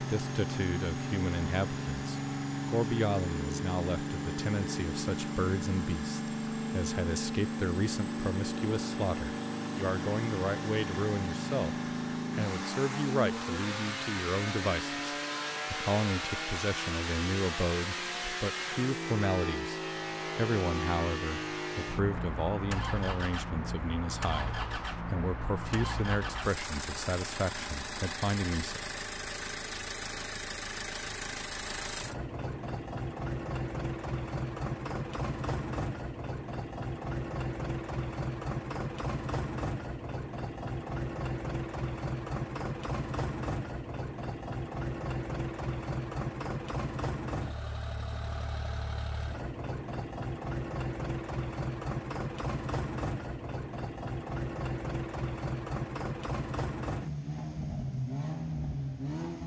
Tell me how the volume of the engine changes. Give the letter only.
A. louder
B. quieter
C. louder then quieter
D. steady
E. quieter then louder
D.